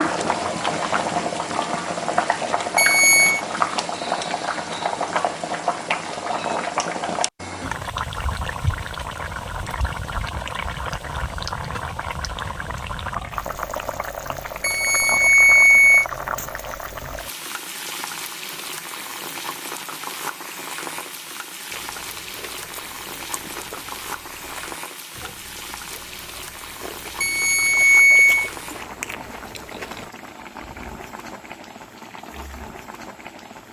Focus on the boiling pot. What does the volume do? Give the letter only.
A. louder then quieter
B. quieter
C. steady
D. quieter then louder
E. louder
B.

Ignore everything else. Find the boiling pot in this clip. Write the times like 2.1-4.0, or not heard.
0.0-33.6.